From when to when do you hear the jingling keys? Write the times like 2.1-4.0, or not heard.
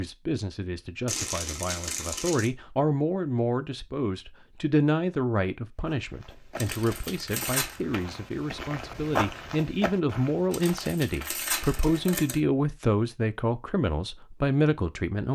not heard.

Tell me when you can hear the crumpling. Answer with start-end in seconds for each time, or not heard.
1.1-2.5, 6.5-7.8, 10.5-12.4.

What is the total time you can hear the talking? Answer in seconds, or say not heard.
15 s.